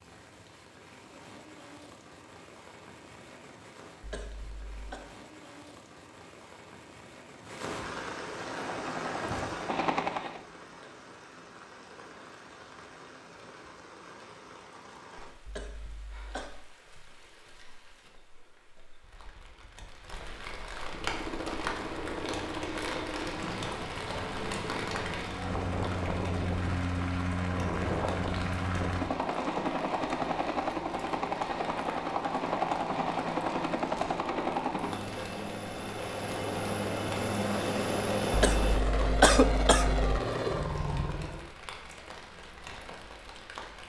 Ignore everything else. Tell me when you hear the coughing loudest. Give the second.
39 s.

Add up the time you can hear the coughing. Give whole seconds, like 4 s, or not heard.
4 s.